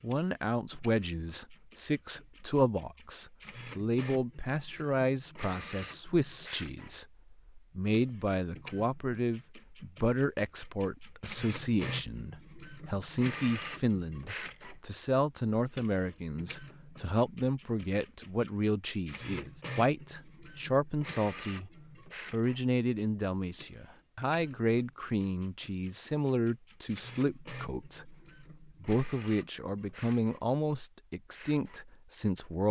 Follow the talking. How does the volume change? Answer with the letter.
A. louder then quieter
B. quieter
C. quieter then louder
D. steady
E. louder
D.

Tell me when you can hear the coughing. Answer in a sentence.
The coughing can't be heard in this clip.